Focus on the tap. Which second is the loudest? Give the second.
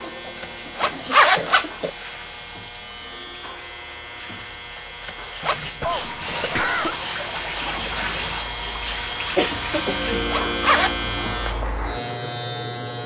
8 s.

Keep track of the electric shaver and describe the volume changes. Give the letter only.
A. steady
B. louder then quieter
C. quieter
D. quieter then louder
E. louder
E.